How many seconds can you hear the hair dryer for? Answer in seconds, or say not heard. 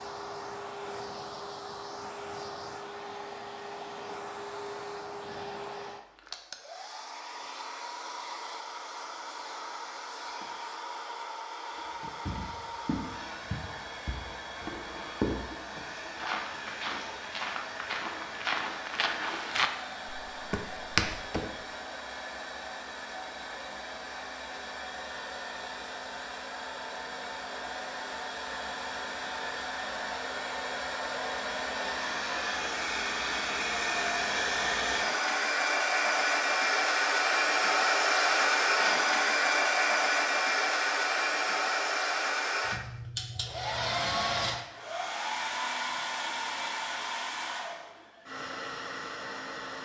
50 s.